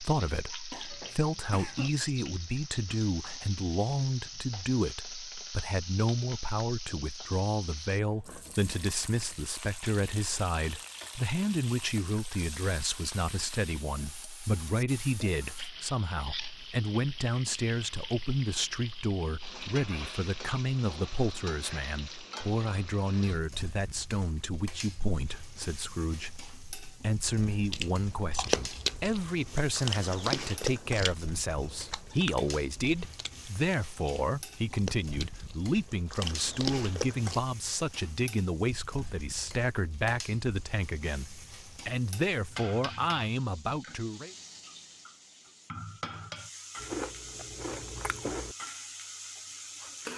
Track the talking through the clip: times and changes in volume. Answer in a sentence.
The talking can be heard from 0.0 to 44.4 s, at a steady volume.